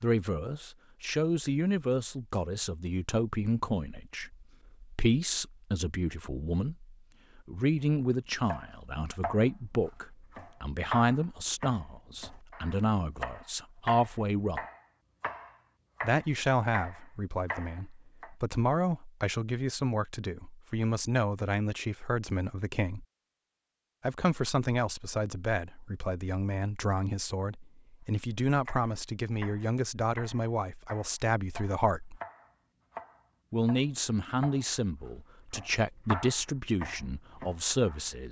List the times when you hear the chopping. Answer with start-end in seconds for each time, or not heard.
8.4-18.3, 28.6-38.2.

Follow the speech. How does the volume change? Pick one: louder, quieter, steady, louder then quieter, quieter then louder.
steady.